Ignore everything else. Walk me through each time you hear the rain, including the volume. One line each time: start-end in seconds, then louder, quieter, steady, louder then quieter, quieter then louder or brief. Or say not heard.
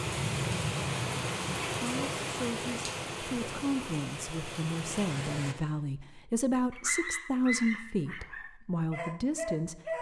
0.0-5.5 quieter.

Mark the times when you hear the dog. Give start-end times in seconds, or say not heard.
6.7-9.9.